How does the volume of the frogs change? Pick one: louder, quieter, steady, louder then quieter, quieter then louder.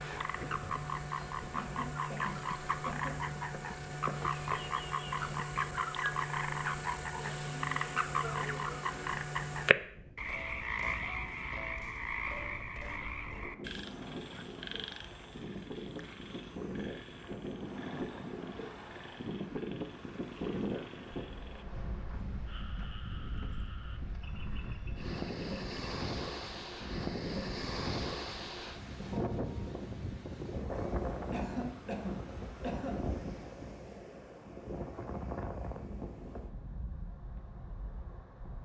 quieter.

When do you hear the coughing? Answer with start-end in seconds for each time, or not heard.
1.5-3.1, 31.3-33.0.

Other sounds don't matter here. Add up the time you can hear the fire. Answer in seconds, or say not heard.
not heard.